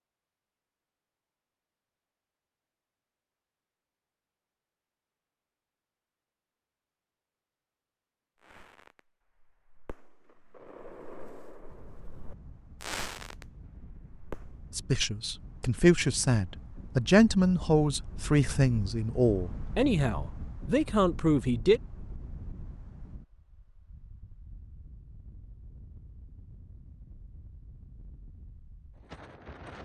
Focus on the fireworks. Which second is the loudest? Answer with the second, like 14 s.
13 s.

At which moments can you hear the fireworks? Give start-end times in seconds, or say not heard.
8.3-14.9.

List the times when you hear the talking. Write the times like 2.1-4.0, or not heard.
14.8-21.8.